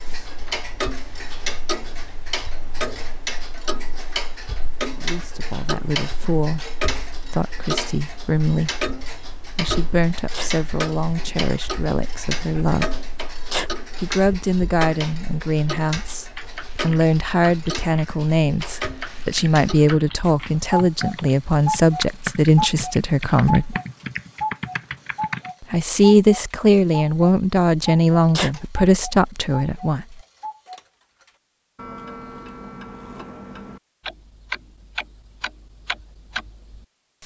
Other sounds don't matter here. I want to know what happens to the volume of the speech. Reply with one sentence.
The loudness of the speech goes up.